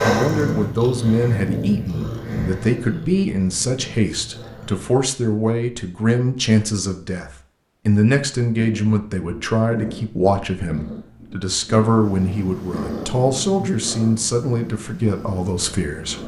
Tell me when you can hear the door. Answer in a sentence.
The door can't be heard in this clip.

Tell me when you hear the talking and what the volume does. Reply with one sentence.
You can hear the talking from 0.0 to 16.2 s, at a steady volume.